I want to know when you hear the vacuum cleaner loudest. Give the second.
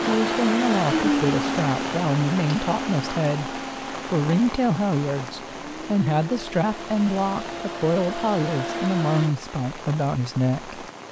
1 s.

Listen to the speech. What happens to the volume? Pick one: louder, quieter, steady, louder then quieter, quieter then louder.
steady.